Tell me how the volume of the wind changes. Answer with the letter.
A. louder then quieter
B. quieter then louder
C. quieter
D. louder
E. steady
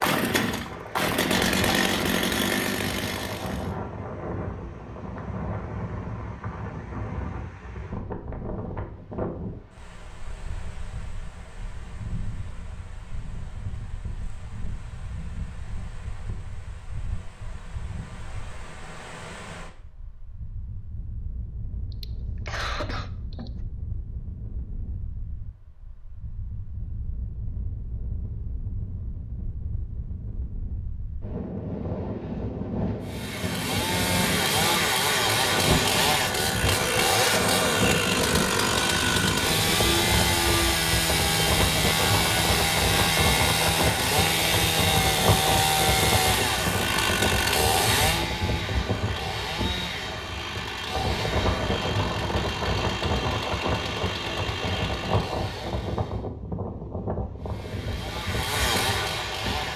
B.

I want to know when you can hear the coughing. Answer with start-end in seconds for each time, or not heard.
21.9-23.6.